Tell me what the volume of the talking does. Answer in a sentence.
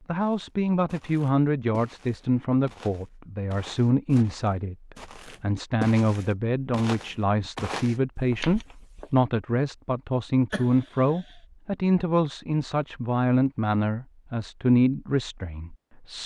The loudness of the talking stays about the same.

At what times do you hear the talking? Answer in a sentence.
The talking can be heard from 0.1 to 16.2 s.